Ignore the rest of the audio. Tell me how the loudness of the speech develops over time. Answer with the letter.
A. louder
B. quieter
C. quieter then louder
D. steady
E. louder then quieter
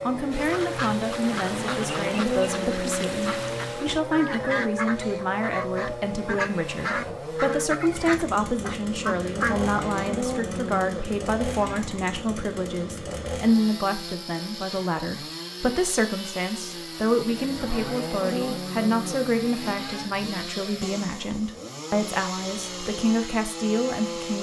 D.